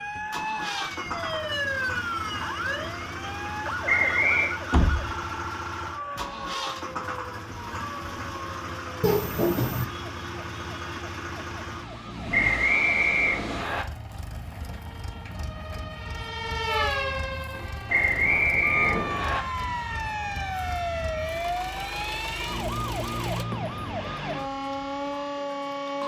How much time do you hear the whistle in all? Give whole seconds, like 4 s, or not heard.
4 s.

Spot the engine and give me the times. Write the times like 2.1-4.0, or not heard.
0.0-23.4.